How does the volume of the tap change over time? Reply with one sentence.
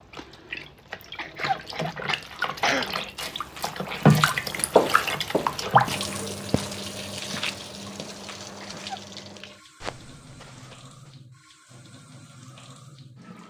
The loudness of the tap goes up, then down.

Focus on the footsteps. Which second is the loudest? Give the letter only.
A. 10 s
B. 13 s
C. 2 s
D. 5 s
D.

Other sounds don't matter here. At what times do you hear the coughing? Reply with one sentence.
The coughing can be heard from 1.1 to 2.9 s and from 8.6 to 9.2 s.